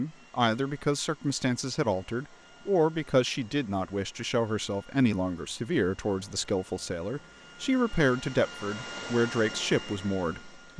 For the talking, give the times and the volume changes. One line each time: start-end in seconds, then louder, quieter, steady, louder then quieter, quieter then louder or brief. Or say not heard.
0.0-10.7 steady.